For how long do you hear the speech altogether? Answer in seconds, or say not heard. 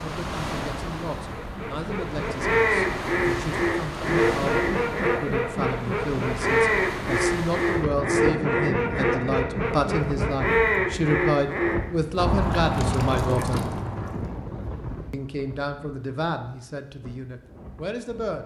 17 s.